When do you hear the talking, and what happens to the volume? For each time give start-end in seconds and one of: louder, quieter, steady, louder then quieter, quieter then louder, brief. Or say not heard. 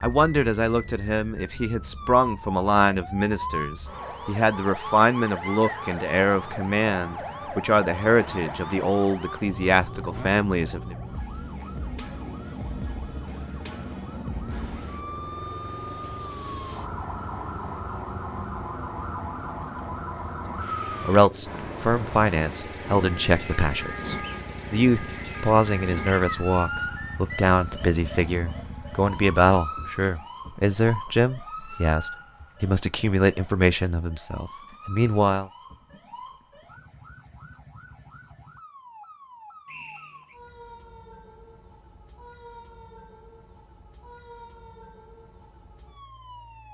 0.0-10.9 steady
20.5-35.5 steady.